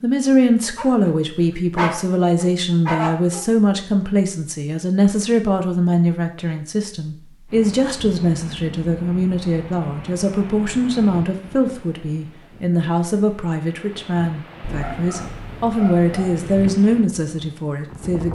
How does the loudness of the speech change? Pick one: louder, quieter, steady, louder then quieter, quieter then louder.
steady.